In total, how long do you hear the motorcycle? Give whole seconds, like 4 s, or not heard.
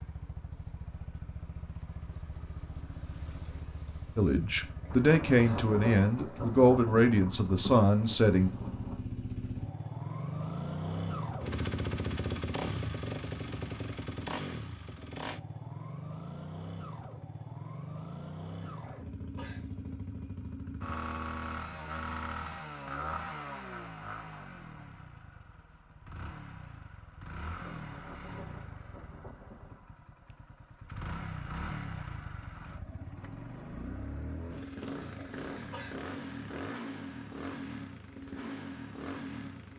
40 s.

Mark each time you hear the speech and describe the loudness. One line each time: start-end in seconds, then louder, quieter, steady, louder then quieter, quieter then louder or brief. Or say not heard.
4.2-8.5 steady.